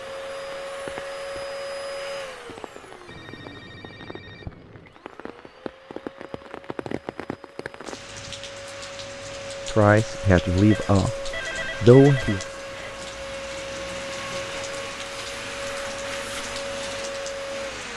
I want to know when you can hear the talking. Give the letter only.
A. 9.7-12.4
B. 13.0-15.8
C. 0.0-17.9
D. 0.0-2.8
A.